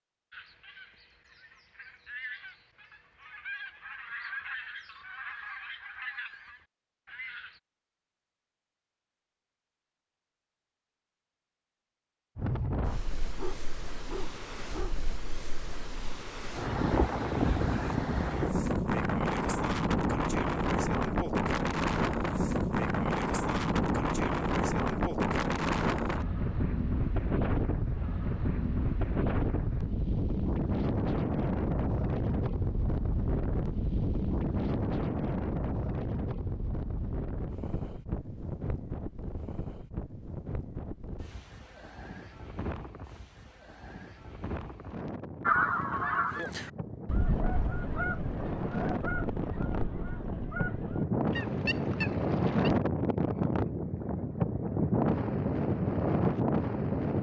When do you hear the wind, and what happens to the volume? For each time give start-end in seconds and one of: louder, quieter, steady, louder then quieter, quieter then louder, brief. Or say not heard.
12.3-57.1 quieter then louder.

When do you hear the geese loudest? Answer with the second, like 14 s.
46 s.